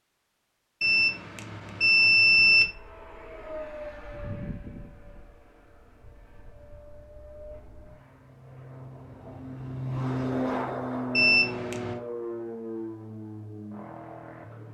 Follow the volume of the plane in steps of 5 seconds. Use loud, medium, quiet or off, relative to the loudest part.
medium, medium, loud.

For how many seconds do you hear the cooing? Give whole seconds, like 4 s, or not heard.
not heard.